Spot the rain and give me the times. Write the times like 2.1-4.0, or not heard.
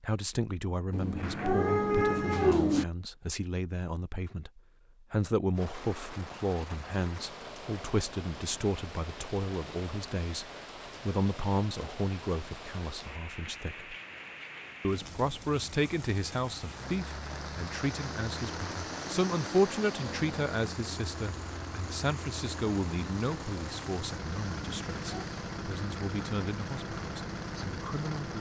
5.5-28.3.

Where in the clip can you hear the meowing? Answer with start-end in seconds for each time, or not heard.
0.9-2.9, 24.6-25.2.